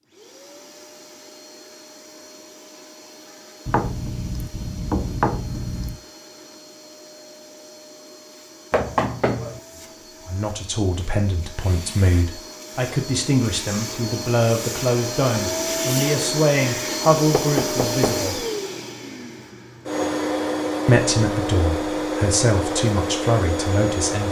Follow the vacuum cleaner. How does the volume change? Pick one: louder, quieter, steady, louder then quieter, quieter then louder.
louder.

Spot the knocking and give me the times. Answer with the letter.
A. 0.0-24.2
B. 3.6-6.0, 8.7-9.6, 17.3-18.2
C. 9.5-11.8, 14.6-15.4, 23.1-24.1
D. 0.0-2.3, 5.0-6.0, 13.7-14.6
B.